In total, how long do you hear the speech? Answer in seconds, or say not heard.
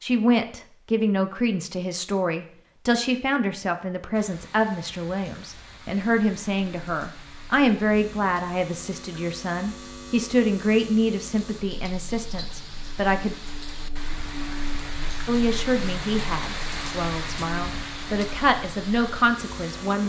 18 s.